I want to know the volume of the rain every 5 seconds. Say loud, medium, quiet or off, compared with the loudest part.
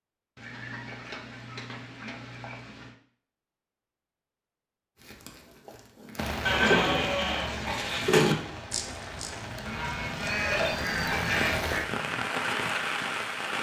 off, medium, loud.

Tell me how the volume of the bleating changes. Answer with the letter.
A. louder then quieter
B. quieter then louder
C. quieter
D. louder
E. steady
B.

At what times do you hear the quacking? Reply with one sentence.
You can hear the quacking from 0.3 to 3.0 s and from 10.2 to 11.7 s.